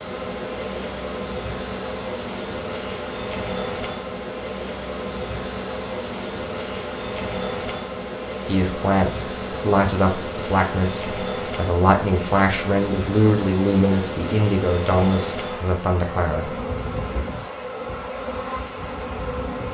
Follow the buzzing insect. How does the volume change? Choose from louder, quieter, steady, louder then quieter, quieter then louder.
steady.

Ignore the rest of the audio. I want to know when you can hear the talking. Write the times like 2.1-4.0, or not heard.
8.4-16.6.